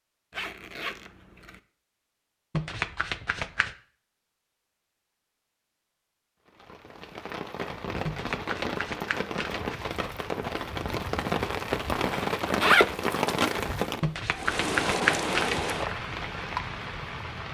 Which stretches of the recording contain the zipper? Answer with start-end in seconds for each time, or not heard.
0.3-1.6, 12.2-13.6.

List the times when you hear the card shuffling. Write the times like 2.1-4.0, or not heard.
2.5-3.8, 8.1-10.1, 14.0-15.8.